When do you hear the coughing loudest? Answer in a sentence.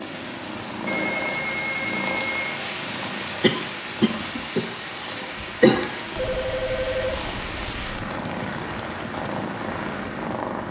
The volume of the coughing peaks at 6 seconds.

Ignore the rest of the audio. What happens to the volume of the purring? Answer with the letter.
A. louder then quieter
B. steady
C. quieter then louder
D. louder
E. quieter
C.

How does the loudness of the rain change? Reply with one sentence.
The volume of the rain stays about the same.